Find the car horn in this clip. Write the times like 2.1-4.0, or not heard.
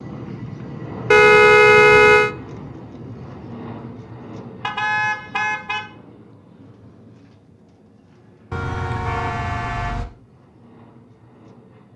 1.1-2.3, 4.6-5.8, 8.5-10.1.